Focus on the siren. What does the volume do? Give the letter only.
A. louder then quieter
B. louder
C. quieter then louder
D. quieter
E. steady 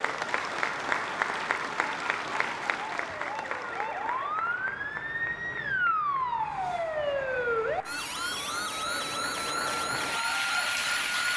B.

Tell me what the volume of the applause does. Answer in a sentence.
The volume of the applause goes down, then up.